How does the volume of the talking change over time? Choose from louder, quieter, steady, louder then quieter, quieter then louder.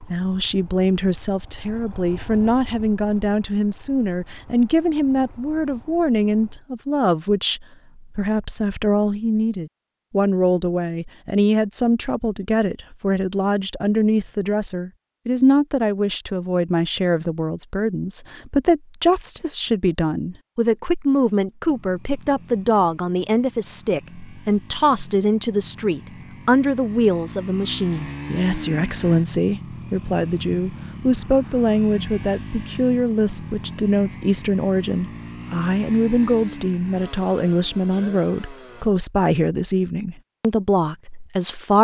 steady.